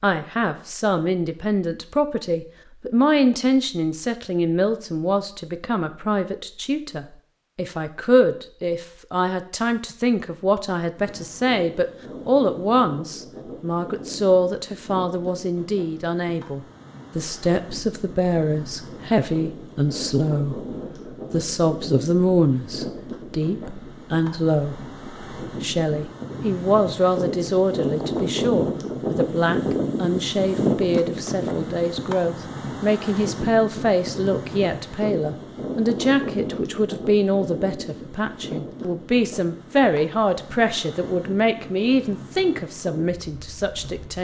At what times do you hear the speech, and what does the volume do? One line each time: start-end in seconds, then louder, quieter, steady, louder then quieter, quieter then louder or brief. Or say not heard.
0.0-44.1 steady.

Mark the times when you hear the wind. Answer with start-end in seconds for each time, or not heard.
10.9-44.1.